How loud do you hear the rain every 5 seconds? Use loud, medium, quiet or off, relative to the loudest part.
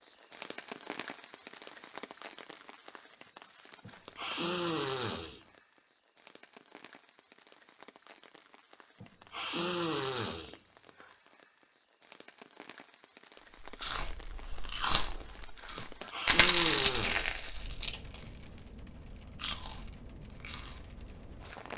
loud, medium, medium, loud, loud.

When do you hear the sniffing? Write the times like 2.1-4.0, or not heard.
3.9-5.5, 9.0-11.1, 15.8-17.4.